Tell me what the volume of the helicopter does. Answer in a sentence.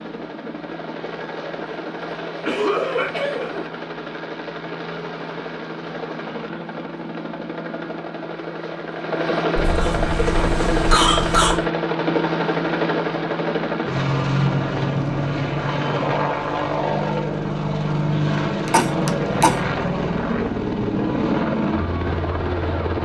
The volume of the helicopter goes up.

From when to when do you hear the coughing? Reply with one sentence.
The coughing can be heard from 2.5 to 3.5 s, from 9.6 to 11.7 s and from 18.6 to 19.6 s.